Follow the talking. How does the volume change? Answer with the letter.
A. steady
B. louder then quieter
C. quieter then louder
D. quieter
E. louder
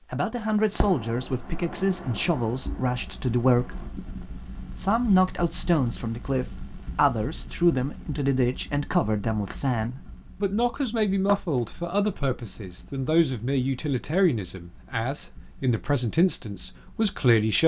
A.